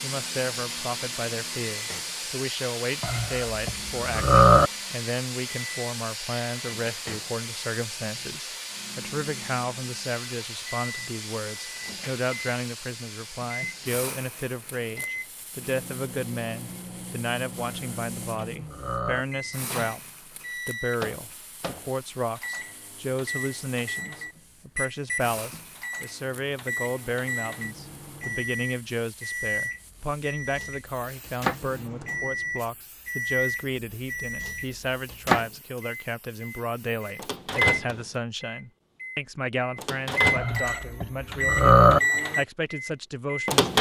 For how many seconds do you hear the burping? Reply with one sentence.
The burping can be heard for 5 seconds in total.